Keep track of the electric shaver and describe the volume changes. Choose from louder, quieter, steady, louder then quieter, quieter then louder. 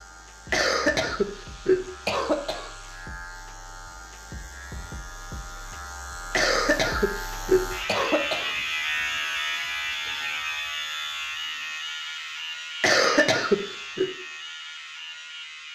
louder then quieter.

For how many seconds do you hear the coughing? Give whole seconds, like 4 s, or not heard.
6 s.